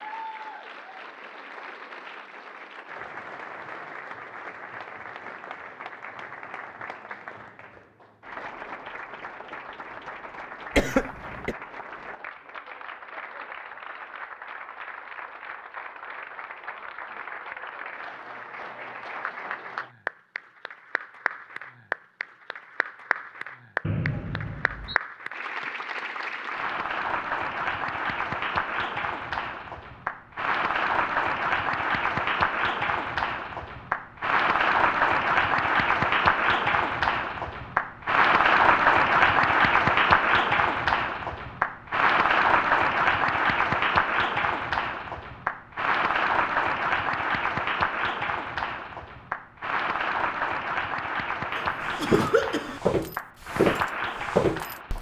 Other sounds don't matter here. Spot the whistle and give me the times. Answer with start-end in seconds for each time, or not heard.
23.8-25.0.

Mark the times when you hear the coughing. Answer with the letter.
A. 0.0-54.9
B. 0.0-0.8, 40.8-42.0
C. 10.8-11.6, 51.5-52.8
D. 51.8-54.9
C.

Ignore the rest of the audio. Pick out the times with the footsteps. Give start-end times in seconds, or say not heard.
51.8-54.9.